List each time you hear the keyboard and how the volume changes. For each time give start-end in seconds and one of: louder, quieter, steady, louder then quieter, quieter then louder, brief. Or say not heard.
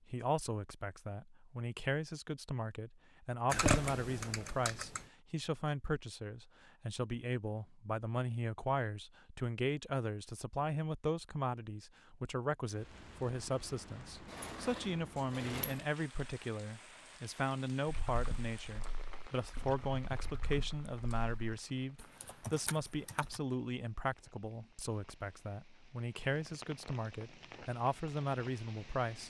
3.5-5.1 brief
17.9-23.4 quieter then louder.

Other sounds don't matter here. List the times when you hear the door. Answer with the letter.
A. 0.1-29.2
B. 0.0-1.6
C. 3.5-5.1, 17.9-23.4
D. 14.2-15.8
D.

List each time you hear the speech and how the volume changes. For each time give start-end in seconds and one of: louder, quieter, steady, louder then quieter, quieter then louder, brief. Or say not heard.
0.1-29.2 steady.